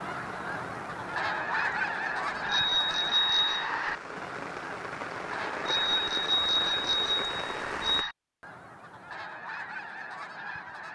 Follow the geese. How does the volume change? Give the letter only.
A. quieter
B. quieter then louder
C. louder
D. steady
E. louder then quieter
A.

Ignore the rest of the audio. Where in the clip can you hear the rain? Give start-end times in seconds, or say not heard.
0.0-8.1.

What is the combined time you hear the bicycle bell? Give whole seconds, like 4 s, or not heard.
4 s.